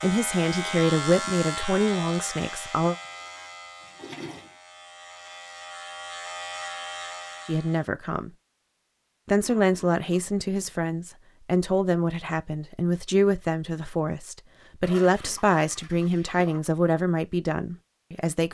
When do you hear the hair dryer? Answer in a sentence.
You can't hear the hair dryer here.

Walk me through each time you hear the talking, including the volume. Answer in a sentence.
You can hear the talking briefly from 0.0 to 3.0 s; briefly from 7.5 to 8.3 s; and from 9.2 to 18.4 s, at a steady volume.